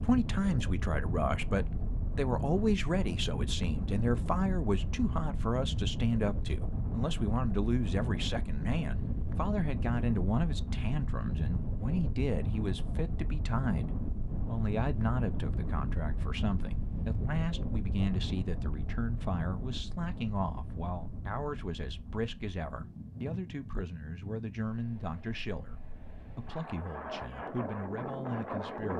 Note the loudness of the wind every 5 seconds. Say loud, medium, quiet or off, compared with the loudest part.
loud, loud, loud, loud, medium, loud.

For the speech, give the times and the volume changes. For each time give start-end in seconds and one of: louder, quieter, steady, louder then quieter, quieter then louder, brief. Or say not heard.
0.0-28.9 quieter.